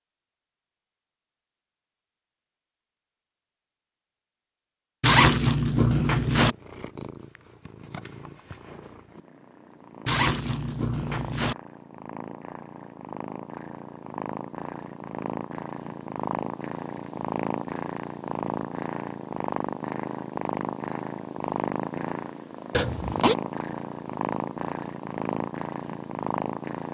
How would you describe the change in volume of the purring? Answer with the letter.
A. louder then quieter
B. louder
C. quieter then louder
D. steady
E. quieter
B.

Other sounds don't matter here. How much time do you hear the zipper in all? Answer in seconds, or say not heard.
4 s.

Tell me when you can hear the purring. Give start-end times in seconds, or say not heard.
6.3-26.9.